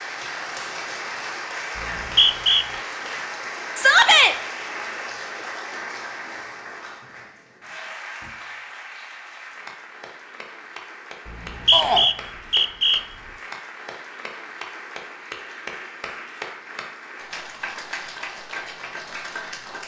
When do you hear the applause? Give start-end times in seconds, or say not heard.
0.0-19.8.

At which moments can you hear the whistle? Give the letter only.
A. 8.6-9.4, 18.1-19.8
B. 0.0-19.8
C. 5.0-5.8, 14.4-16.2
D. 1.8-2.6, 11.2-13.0
D.